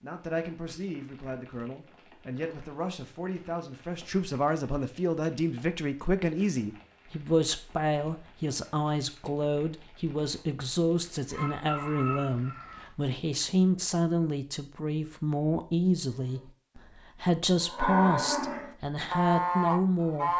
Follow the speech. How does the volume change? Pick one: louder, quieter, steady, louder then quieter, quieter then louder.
louder.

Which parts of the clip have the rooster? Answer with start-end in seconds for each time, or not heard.
11.3-12.9.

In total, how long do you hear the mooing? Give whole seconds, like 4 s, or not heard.
4 s.